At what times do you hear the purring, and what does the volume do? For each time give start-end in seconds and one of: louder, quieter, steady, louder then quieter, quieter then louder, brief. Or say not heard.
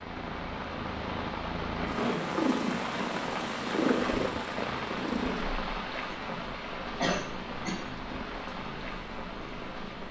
0.0-10.0 louder then quieter.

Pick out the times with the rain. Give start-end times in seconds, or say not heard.
0.0-10.0.